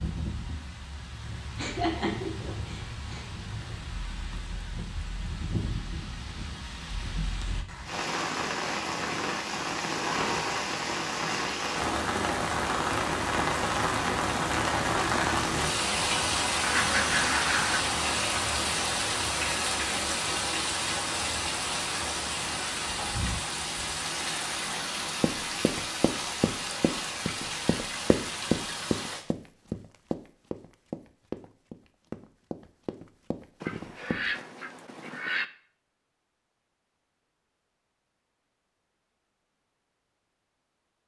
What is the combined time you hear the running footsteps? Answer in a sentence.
The running footsteps can be heard for 9 seconds in total.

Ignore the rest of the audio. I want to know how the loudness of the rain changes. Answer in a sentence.
The loudness of the rain goes up, then down.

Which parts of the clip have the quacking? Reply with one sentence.
You can hear the quacking from 16.6 to 17.8 s and from 33.6 to 35.5 s.